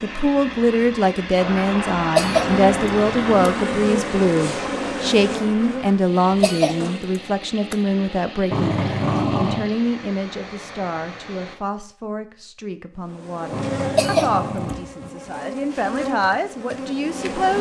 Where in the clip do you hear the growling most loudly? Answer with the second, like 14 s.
9 s.